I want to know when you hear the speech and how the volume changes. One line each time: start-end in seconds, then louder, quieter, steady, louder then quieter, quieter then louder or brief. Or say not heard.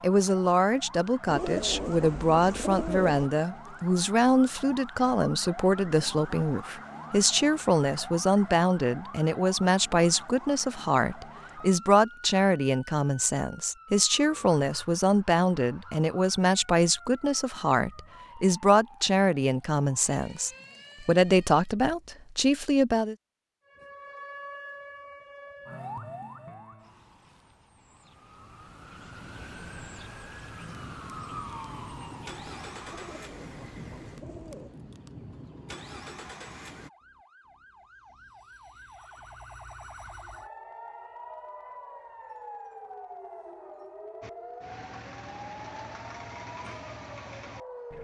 0.0-23.1 steady.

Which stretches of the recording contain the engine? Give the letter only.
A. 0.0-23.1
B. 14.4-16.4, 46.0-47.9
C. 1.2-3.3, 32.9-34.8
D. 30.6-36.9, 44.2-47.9
D.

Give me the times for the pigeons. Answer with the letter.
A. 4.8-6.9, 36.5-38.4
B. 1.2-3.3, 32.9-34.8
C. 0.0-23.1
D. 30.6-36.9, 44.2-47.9
B.